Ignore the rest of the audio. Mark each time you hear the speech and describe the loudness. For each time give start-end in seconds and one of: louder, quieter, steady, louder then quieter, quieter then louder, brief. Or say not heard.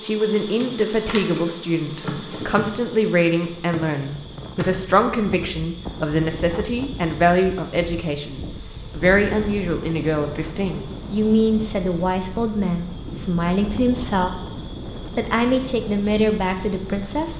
0.0-14.3 steady
15.2-17.3 brief.